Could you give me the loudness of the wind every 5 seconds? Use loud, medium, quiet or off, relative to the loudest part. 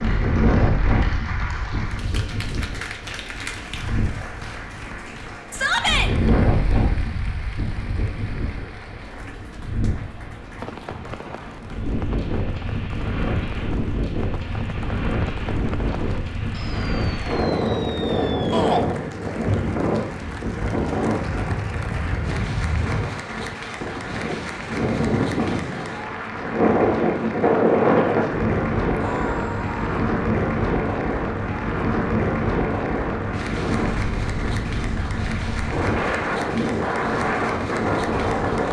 medium, medium, medium, loud, medium, loud, loud, loud.